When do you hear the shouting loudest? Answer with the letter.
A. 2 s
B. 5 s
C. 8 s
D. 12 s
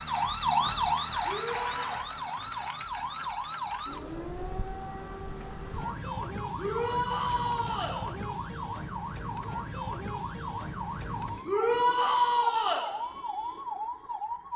D.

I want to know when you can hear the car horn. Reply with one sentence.
You can't hear the car horn here.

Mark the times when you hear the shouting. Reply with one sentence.
You can hear the shouting from 1.2 to 1.9 s, from 6.5 to 8.0 s and from 11.4 to 12.8 s.